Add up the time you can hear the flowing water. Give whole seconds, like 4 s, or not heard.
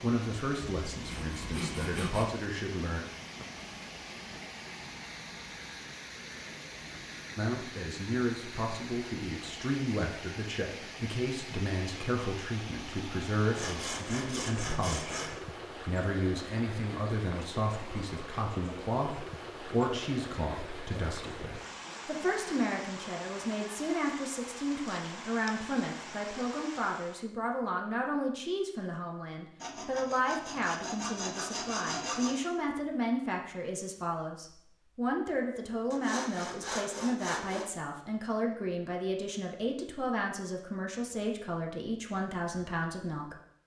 27 s.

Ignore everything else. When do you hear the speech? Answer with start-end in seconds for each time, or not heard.
0.0-3.0, 7.3-43.4.